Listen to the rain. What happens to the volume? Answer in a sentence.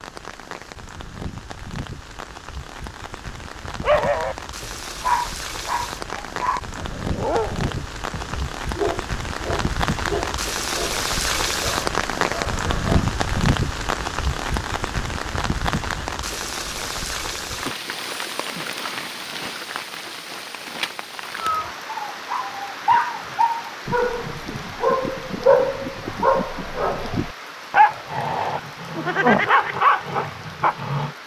The loudness of the rain goes up, then down.